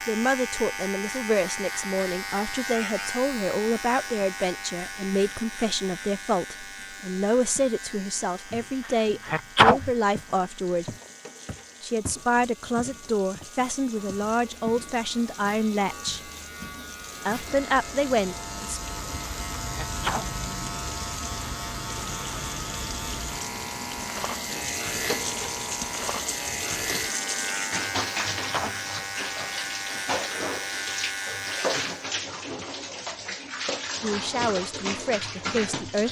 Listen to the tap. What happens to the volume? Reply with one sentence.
The volume of the tap goes up.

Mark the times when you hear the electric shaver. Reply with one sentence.
You can hear the electric shaver from 0.0 to 32.1 s.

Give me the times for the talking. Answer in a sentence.
You can hear the talking from 0.1 to 10.9 s, from 11.8 to 16.3 s, from 17.2 to 18.8 s and from 34.0 to 36.0 s.